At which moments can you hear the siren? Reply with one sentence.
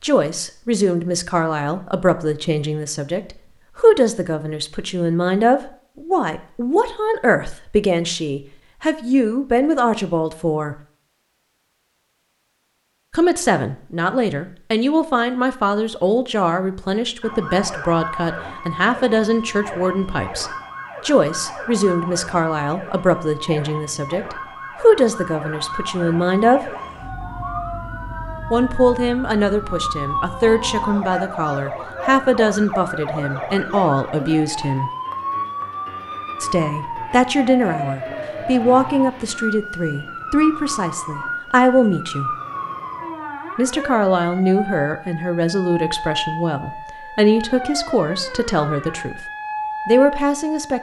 You can hear the siren from 17.2 to 50.7 s.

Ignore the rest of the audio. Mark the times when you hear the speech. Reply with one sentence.
You can hear the speech from 0.0 to 10.8 s, from 13.1 to 26.7 s, from 28.5 to 34.9 s, from 36.4 to 42.4 s, from 43.5 to 49.2 s and from 49.9 to 50.7 s.